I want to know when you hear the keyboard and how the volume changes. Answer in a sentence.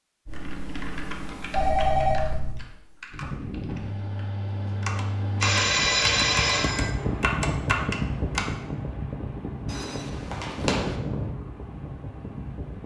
The keyboard can be heard from 0.2 to 8.5 s, getting quieter then louder.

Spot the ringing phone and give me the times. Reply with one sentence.
The ringing phone can be heard from 1.5 to 2.6 s, from 5.4 to 6.9 s and from 9.7 to 10.9 s.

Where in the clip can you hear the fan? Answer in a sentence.
You can hear the fan from 3.1 to 12.8 s.